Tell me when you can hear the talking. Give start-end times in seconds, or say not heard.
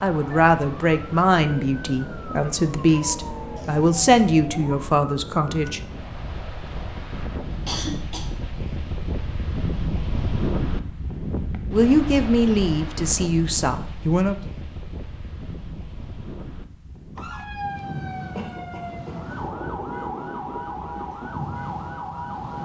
0.0-5.8, 11.7-14.3.